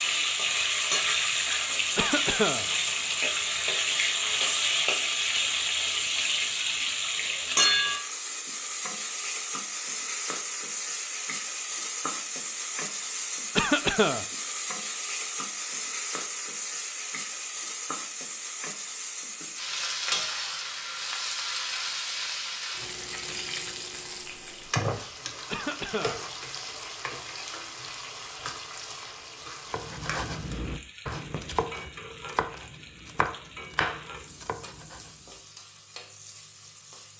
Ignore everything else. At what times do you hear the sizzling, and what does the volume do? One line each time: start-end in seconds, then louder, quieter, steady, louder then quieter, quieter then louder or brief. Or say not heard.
0.0-37.1 quieter.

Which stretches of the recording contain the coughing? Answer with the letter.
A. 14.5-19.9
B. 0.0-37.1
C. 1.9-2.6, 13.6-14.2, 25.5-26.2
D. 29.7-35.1
C.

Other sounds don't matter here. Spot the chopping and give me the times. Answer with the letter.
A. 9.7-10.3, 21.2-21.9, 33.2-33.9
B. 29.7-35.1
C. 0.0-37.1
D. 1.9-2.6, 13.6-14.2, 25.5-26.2
B.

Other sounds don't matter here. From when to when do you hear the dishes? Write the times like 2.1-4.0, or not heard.
not heard.